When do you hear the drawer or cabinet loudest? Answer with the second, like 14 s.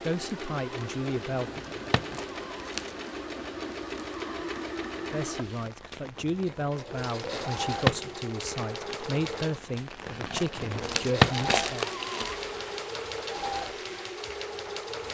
11 s.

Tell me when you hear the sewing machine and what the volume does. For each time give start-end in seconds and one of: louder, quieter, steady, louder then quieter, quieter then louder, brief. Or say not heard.
0.0-15.0 steady.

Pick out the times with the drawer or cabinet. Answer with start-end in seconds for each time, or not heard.
1.3-2.1, 7.2-8.1, 10.6-11.4.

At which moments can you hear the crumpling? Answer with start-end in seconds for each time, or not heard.
1.9-3.0, 10.1-12.5.